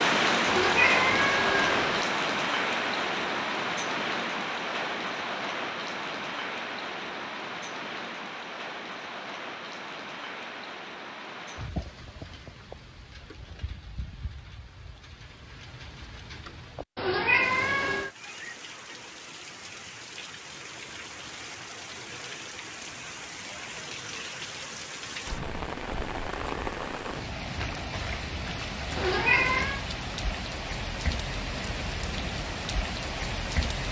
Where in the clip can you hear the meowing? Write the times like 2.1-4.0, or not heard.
0.5-2.0, 16.9-18.1, 28.9-29.9.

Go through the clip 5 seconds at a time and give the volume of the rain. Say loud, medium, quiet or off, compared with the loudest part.
loud, medium, quiet, quiet, quiet, medium, medium.